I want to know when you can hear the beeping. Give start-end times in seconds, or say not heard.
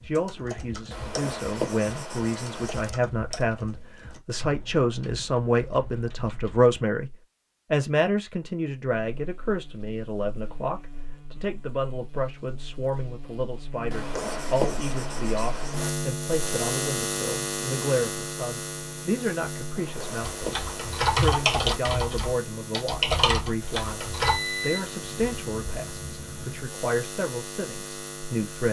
24.2-26.6.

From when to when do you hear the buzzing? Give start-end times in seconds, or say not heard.
9.2-28.6.